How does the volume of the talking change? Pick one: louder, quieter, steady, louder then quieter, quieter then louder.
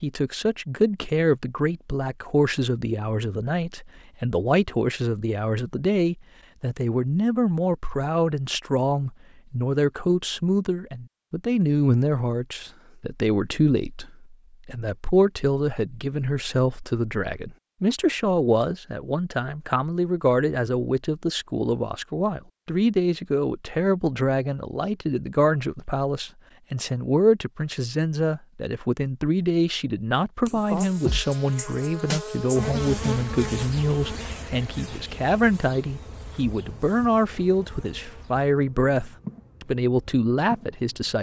steady.